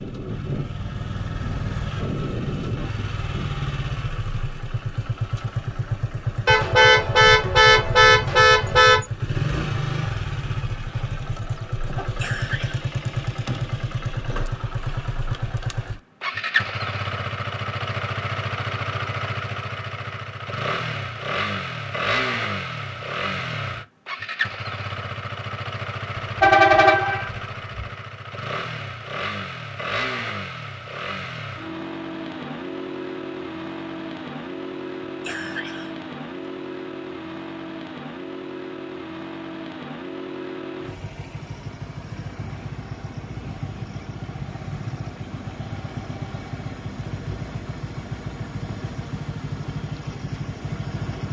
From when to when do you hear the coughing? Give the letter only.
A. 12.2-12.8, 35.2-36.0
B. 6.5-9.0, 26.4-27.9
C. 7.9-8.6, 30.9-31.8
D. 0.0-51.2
A.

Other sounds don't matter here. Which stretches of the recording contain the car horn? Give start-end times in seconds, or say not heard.
6.5-9.0, 26.4-27.9.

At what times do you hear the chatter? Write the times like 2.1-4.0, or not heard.
not heard.